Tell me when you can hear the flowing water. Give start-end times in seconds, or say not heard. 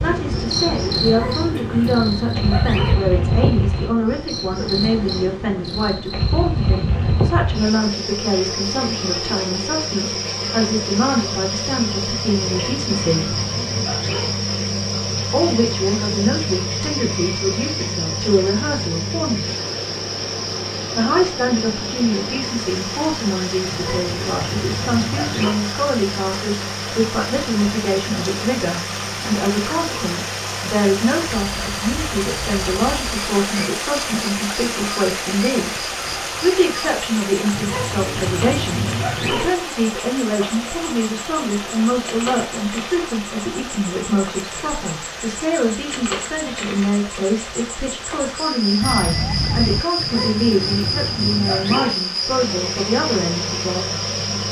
19.4-54.4.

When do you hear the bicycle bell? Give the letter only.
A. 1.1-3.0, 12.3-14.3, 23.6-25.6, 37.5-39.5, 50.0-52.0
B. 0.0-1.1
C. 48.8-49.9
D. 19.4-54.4
C.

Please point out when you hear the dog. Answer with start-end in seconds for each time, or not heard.
1.1-3.0, 12.3-14.3, 23.6-25.6, 37.5-39.5, 50.0-52.0.